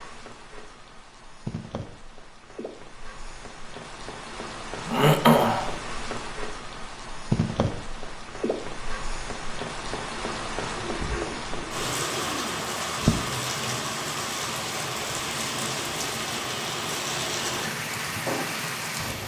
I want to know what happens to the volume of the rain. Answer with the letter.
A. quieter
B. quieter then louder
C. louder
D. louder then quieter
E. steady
C.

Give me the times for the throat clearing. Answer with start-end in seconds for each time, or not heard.
4.8-5.8, 10.8-13.2.